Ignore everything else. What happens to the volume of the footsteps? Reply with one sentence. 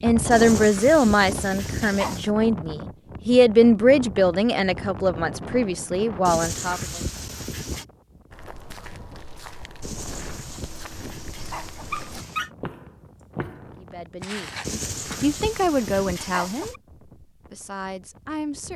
The loudness of the footsteps goes up.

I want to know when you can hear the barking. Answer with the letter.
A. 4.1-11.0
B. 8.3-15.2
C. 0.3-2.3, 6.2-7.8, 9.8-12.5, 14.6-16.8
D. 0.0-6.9
C.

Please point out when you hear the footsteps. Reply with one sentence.
You can hear the footsteps from 8.3 to 15.2 s.